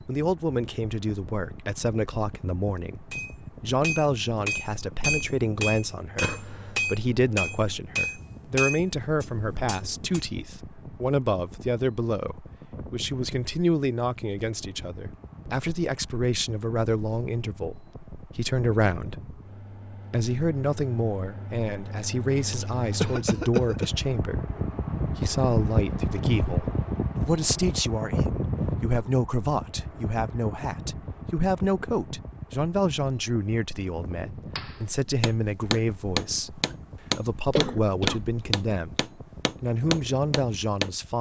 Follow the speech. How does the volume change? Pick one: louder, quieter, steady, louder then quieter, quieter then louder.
steady.